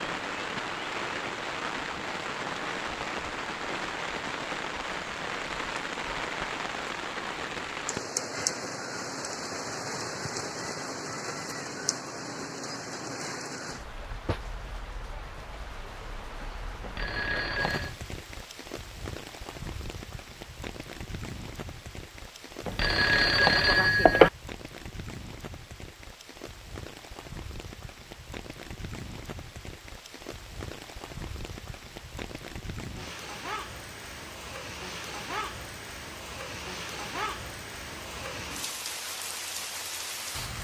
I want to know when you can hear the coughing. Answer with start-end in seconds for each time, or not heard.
not heard.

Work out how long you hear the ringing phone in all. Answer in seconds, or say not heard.
3 s.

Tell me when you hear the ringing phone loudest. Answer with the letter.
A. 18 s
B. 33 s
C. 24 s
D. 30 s
C.